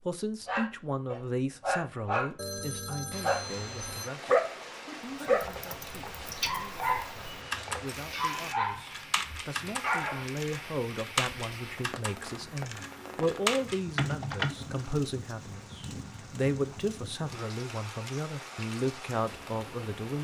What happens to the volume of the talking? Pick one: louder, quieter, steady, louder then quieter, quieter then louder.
quieter then louder.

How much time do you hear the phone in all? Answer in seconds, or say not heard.
2 s.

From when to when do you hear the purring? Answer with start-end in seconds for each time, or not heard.
not heard.